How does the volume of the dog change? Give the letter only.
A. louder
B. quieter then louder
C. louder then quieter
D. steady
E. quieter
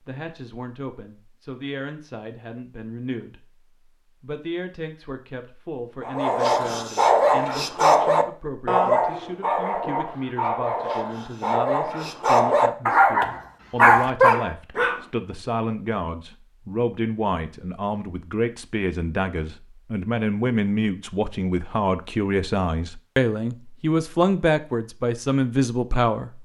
B.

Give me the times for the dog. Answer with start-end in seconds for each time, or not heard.
6.0-15.0.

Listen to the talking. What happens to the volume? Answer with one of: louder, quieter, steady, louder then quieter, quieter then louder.
louder.